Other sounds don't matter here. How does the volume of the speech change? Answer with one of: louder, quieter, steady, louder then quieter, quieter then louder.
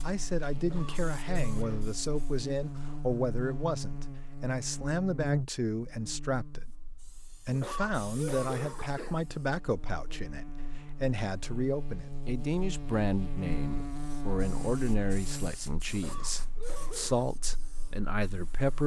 steady.